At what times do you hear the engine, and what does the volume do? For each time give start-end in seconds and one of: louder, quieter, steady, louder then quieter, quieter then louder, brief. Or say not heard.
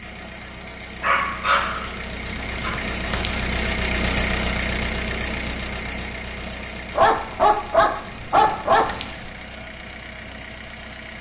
0.0-11.1 louder then quieter.